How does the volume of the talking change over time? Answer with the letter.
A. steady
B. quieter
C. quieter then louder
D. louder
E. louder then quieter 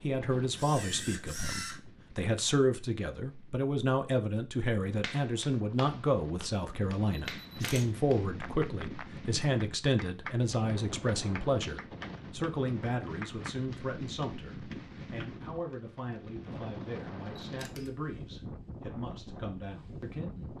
B.